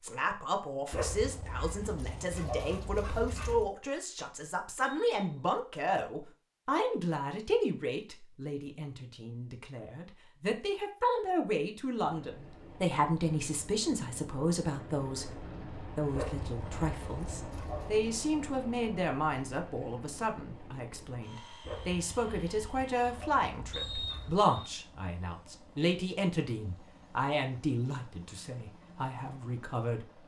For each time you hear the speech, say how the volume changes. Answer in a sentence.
You can hear the speech from 0.0 to 30.1 s, at a steady volume.